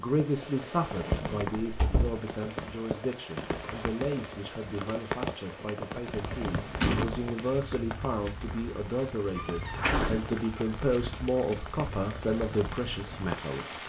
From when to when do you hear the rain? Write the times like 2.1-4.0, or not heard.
0.0-13.8.